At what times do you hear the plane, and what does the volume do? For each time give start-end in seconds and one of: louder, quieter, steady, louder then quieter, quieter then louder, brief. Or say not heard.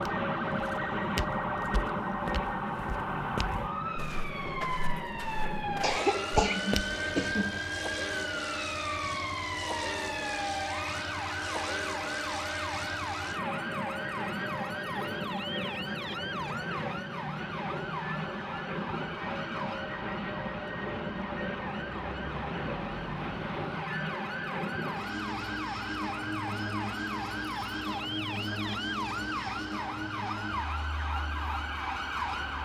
0.0-32.5 steady.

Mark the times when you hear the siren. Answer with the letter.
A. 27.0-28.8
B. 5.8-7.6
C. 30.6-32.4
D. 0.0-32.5
D.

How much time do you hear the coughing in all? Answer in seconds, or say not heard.
2 s.